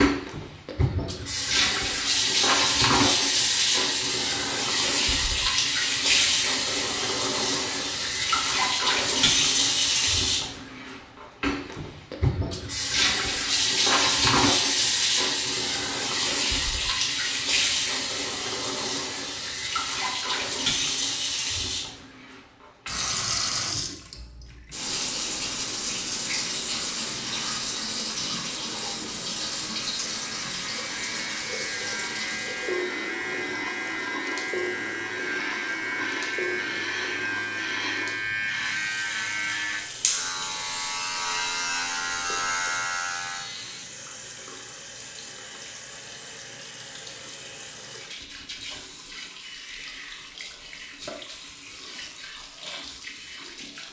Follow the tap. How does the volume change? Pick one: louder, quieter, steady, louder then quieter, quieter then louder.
quieter.